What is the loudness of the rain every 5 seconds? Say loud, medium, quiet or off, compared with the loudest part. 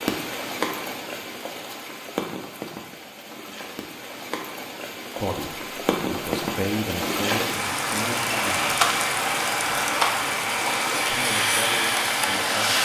medium, loud, loud.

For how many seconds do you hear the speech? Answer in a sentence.
The speech can be heard for 5 seconds in total.